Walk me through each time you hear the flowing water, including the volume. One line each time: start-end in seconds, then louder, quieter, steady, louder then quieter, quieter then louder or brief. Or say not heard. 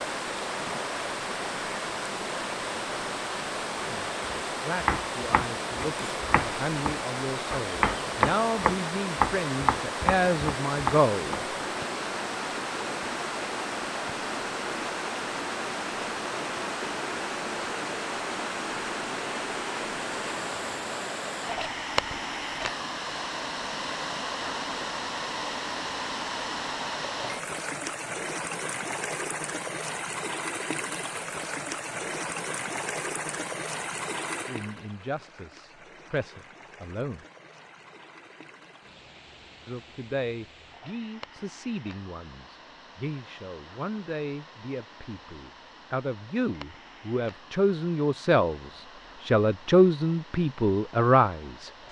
0.0-51.8 quieter.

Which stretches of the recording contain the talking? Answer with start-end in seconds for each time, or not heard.
3.8-11.4, 34.5-37.2, 39.6-51.7.